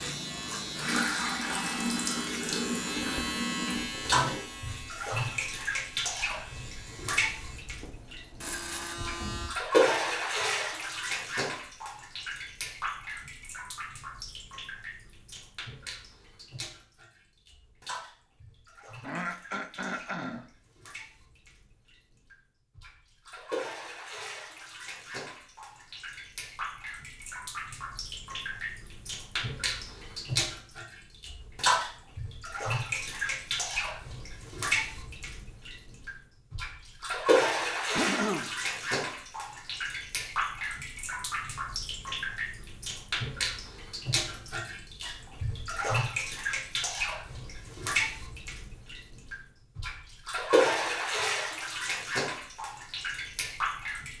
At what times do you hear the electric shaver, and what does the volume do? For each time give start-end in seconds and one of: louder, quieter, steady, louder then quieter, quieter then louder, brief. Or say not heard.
0.0-9.6 quieter then louder.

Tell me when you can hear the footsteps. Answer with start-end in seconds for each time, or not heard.
not heard.